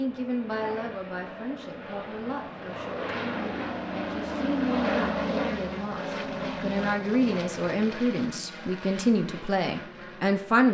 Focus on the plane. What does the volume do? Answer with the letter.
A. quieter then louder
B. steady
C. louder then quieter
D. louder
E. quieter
C.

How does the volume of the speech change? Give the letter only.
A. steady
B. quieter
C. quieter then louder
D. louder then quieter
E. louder
C.